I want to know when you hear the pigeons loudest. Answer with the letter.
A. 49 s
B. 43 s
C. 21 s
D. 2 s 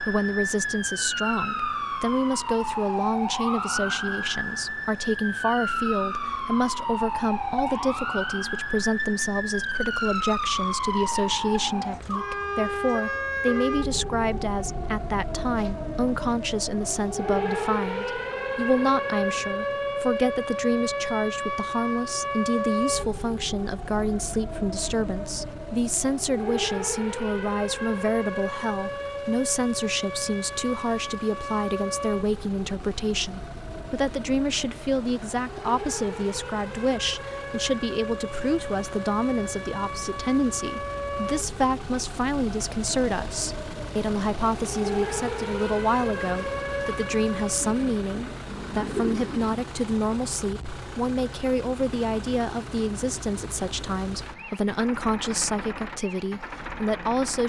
A.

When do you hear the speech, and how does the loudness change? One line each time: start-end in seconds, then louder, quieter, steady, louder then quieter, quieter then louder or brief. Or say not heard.
0.0-57.4 steady.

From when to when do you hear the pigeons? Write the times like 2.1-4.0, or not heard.
47.6-49.5.